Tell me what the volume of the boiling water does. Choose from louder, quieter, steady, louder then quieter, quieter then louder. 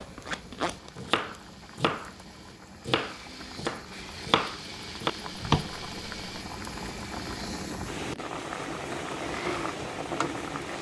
louder.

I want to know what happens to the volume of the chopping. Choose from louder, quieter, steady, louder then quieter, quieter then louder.
steady.